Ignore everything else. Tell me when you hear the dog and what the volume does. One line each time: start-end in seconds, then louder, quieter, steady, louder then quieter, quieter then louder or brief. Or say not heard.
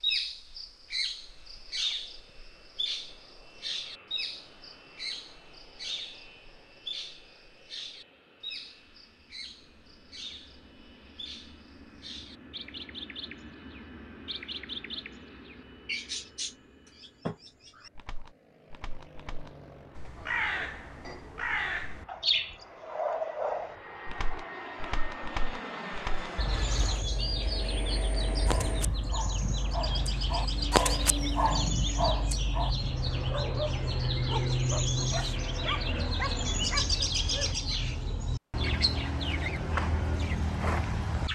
28.4-37.5 louder then quieter.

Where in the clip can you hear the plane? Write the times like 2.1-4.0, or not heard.
0.0-37.0.